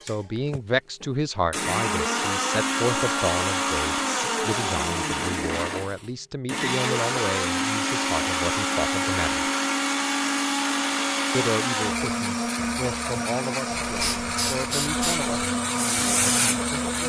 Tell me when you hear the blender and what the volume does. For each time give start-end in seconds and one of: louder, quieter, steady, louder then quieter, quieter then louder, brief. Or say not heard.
0.0-17.0 steady.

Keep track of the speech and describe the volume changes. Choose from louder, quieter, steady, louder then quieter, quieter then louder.
quieter.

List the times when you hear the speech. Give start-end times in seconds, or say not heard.
0.1-9.5, 11.3-17.0.